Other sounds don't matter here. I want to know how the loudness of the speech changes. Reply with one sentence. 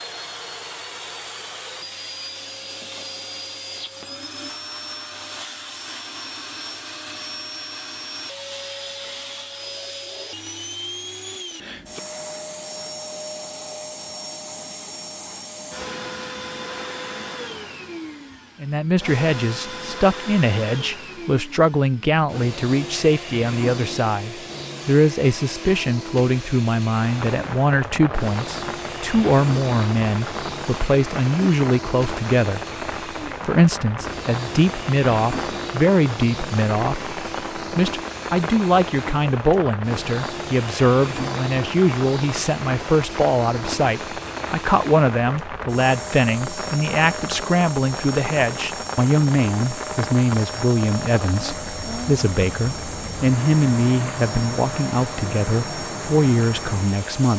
The loudness of the speech stays about the same.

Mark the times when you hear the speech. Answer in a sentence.
You can hear the speech from 18.6 to 32.6 s and from 33.2 to 57.3 s.